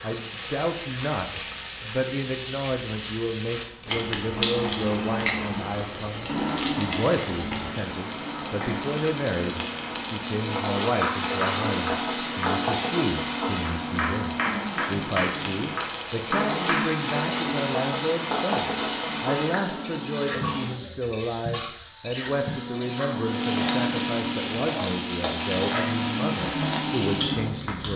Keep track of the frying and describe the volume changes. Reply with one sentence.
The volume of the frying stays about the same.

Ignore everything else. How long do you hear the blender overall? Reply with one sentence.
You can hear the blender for 22 seconds altogether.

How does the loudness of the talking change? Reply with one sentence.
The loudness of the talking stays about the same.